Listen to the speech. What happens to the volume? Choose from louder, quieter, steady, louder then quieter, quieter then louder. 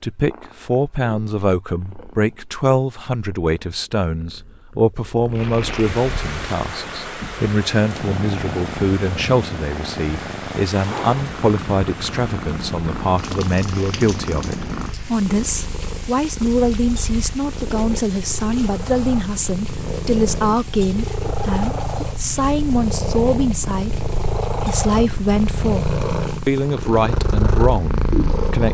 steady.